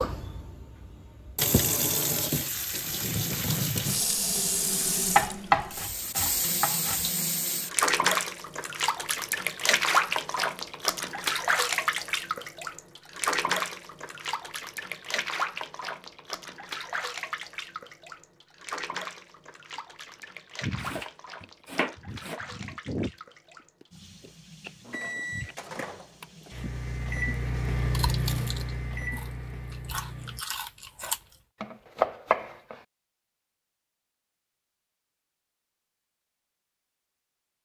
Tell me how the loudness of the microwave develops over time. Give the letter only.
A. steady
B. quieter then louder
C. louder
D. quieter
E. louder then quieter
E.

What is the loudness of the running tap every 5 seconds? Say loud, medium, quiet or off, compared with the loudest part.
loud, loud, loud, medium, quiet, quiet, off, off.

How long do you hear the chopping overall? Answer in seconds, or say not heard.
5 s.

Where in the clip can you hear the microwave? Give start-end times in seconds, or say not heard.
24.8-30.4.